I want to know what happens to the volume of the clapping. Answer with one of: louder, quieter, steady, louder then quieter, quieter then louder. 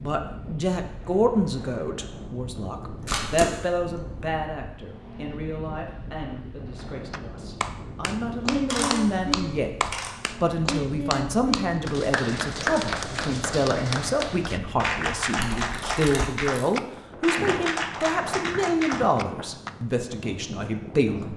steady.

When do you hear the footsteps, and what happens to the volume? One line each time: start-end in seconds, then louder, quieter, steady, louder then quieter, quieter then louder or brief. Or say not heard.
not heard.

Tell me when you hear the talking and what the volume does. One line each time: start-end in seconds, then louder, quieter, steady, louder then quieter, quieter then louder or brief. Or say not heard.
0.0-21.3 quieter then louder.